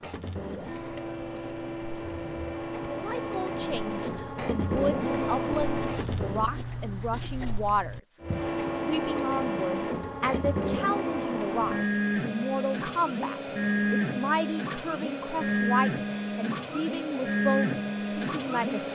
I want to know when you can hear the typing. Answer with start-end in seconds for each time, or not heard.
not heard.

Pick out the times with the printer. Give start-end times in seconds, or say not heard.
0.0-6.5, 8.2-18.9.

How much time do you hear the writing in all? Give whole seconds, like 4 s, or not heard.
8 s.